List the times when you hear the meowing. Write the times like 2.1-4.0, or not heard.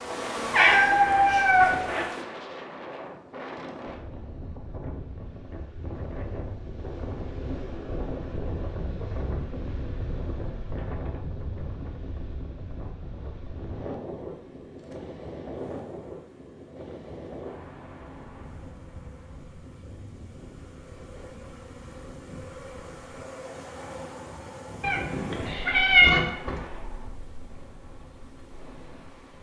0.5-2.0, 24.8-26.7.